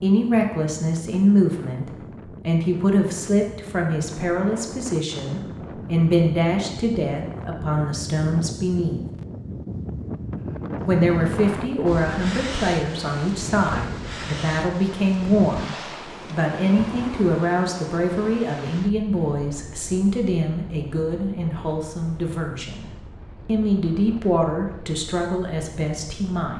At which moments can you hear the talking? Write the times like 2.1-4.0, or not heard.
0.0-9.0, 10.8-26.5.